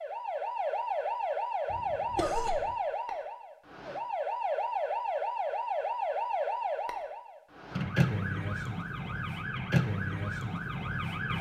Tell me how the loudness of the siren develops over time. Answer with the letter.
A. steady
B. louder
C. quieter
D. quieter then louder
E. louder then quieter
A.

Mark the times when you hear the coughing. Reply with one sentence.
The coughing can be heard from 1.7 to 2.8 s.